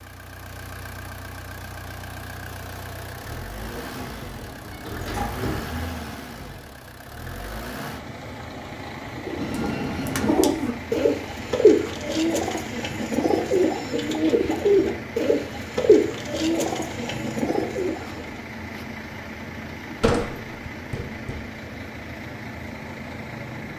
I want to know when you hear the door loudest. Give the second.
20 s.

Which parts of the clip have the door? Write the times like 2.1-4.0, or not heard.
3.6-5.8, 9.3-10.4, 20.0-21.4.